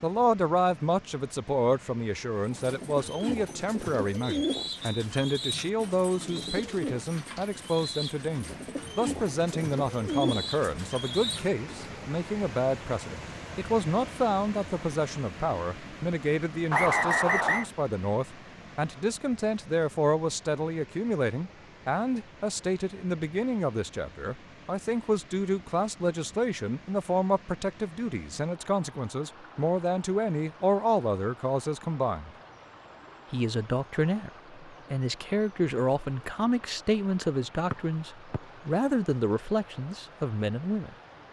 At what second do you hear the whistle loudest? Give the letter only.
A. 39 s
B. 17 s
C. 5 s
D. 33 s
B.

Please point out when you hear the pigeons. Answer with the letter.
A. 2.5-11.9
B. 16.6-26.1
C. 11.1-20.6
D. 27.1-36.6
A.